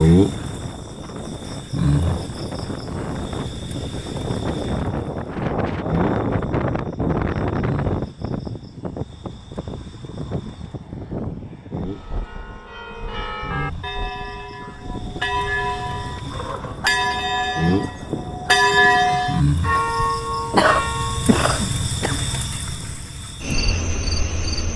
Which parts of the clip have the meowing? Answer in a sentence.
You can't hear the meowing here.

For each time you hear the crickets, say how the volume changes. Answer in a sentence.
The crickets can be heard from 0.0 to 24.7 s, getting quieter then louder.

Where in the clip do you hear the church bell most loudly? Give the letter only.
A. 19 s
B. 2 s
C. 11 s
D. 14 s
A.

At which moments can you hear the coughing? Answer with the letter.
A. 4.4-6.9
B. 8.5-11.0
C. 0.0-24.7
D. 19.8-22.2
D.